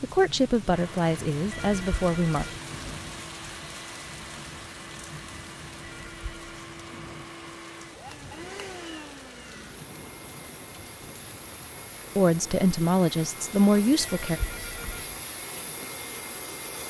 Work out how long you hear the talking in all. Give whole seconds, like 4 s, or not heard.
5 s.